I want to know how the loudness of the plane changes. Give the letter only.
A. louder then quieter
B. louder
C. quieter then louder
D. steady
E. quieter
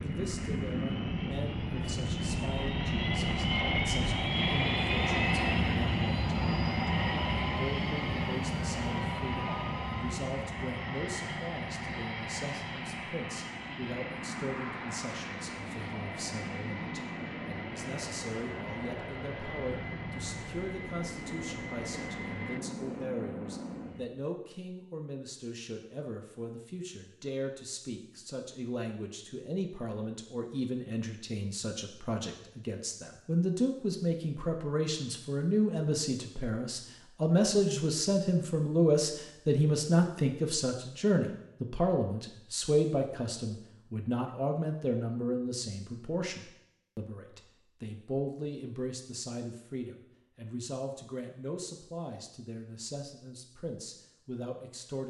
E.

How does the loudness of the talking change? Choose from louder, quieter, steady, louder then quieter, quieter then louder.
louder then quieter.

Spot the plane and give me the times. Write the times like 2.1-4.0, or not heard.
0.0-24.1.